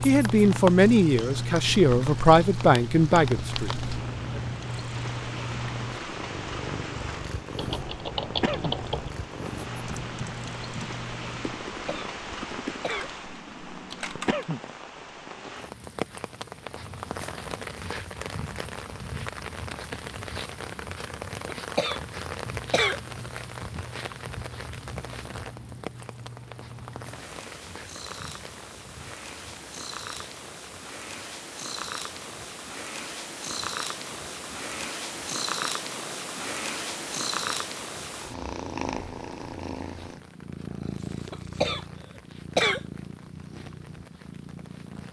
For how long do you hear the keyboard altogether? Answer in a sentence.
The keyboard can be heard for 7 seconds in total.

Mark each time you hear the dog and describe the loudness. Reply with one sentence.
You can't hear the dog here.